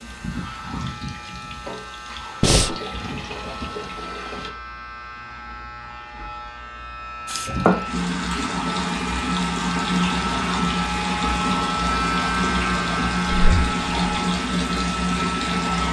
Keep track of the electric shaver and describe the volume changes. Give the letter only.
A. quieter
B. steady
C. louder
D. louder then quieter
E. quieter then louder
C.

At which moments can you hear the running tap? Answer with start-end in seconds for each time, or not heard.
0.0-4.5, 7.2-15.8.